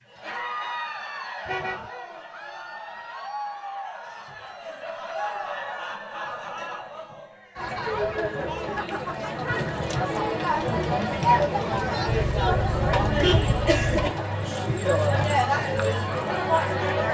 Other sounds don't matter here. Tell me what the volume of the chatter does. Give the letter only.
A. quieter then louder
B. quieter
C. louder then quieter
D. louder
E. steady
D.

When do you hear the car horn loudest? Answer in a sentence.
The volume of the car horn peaks at 13 seconds.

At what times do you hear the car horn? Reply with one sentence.
You can hear the car horn from 1.4 to 1.9 s and from 12.1 to 14.1 s.